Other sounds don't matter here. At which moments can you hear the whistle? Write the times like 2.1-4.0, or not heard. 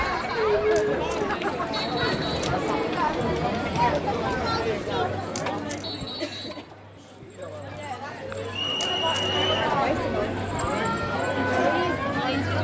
1.7-2.4, 5.8-6.7, 8.5-9.6.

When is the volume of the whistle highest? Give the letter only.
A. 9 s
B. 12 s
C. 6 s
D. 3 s
A.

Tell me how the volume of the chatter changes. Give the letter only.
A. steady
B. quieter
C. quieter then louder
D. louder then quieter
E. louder
C.